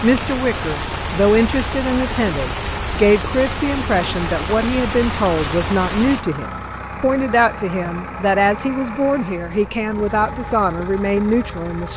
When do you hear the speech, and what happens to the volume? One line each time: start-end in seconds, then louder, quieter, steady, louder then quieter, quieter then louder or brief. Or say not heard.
0.0-11.9 steady.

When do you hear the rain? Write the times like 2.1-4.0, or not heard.
0.0-6.2.